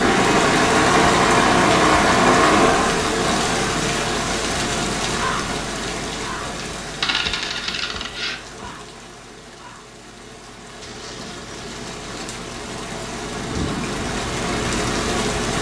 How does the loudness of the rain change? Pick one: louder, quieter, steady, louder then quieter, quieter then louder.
quieter then louder.